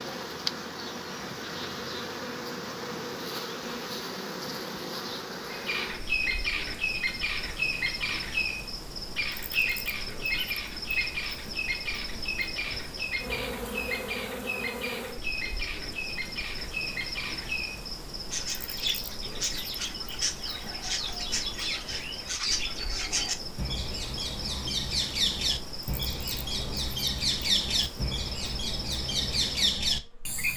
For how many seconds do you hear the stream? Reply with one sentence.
You can't hear the stream here.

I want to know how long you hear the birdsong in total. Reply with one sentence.
The birdsong can be heard for 25 seconds in total.